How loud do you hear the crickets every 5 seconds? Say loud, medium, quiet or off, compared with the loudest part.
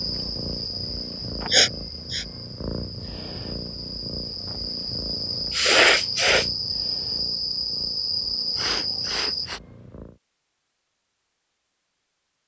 medium, loud, off.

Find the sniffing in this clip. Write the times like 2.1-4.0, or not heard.
1.5-2.2, 5.5-6.5, 8.6-9.6.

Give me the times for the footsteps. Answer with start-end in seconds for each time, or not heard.
not heard.